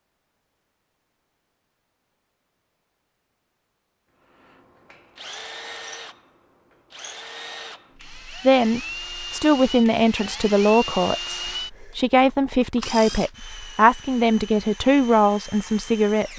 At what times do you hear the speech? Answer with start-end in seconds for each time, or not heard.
8.4-16.3.